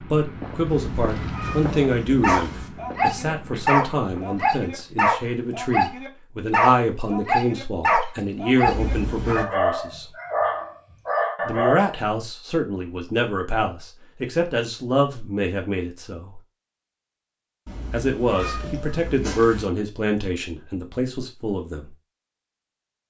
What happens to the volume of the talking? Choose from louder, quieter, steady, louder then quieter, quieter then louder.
steady.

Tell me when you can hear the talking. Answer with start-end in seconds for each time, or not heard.
0.1-10.1, 11.4-16.4, 17.9-21.9.